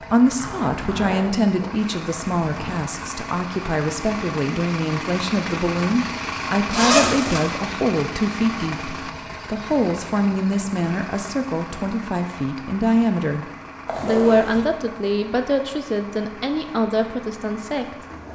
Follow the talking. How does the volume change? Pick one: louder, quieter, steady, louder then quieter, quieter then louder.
steady.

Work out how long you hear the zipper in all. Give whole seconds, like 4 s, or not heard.
4 s.